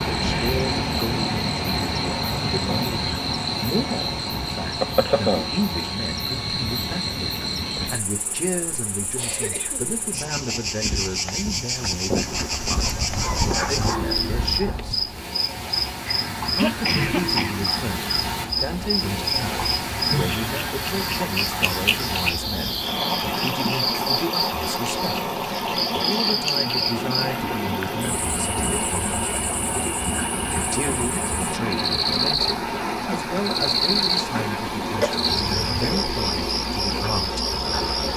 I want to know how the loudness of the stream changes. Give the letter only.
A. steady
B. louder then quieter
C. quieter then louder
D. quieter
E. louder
C.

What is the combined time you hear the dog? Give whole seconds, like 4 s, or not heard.
3 s.